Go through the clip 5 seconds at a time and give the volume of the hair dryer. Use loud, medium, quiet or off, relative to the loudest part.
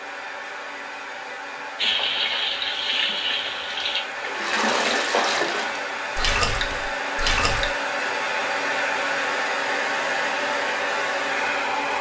medium, loud, loud.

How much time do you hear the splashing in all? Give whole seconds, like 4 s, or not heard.
6 s.